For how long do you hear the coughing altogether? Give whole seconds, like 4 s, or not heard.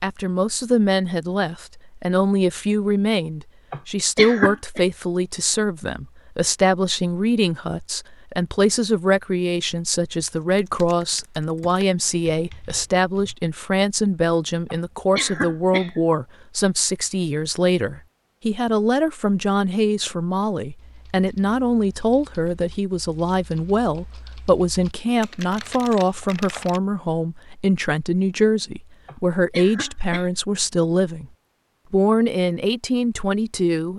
4 s.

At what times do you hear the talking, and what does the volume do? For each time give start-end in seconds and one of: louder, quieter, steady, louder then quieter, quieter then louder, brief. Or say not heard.
0.0-31.3 steady
31.9-33.9 brief.